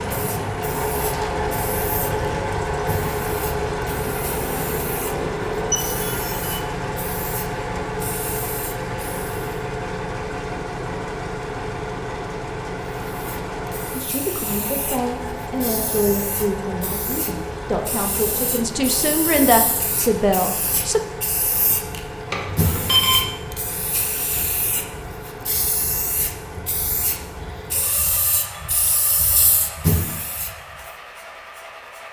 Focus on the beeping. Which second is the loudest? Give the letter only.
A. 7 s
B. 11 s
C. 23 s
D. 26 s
C.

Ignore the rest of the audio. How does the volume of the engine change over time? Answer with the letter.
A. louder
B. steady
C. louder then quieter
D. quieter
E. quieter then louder
D.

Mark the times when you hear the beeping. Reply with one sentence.
The beeping can be heard from 5.7 to 6.3 s and from 22.3 to 23.3 s.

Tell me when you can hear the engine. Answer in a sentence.
You can hear the engine from 0.0 to 32.0 s.